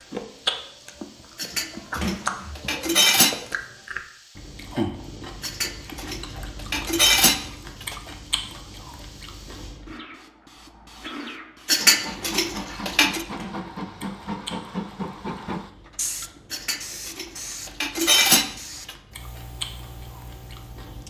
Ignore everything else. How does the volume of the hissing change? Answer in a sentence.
The loudness of the hissing goes up, then down.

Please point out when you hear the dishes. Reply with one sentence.
You can hear the dishes from 1.4 to 3.4 s, from 5.4 to 8.0 s, from 11.7 to 13.2 s and from 16.5 to 18.9 s.